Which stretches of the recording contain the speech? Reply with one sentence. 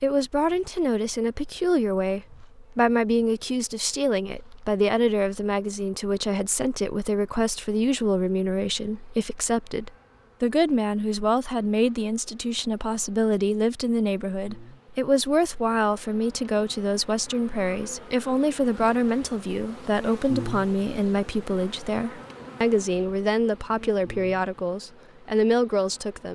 The speech can be heard from 0.0 to 26.3 s.